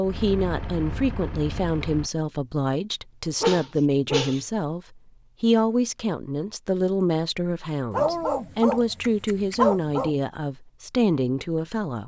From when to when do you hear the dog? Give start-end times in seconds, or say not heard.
3.4-4.4, 7.9-10.2.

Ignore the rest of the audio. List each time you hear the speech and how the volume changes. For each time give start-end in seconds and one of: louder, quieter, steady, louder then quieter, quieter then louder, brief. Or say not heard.
0.0-12.0 steady.